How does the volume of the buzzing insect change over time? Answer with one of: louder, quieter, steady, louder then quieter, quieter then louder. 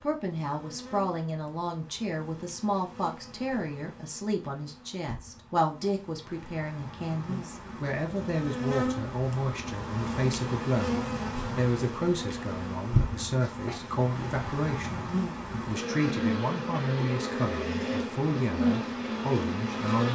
louder.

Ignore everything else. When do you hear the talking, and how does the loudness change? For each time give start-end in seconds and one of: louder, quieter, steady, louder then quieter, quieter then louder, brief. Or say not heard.
0.0-20.1 steady.